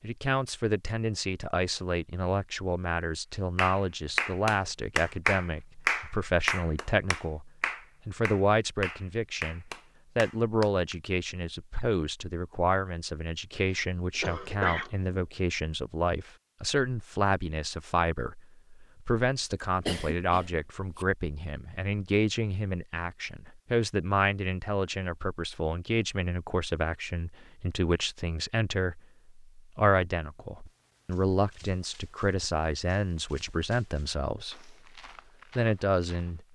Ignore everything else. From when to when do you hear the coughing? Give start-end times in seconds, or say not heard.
13.7-15.1, 19.9-21.1.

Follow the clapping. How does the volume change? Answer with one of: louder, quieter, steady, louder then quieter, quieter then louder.
quieter.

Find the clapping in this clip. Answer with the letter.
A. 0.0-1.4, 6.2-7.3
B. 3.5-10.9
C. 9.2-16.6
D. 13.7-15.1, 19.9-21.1
B.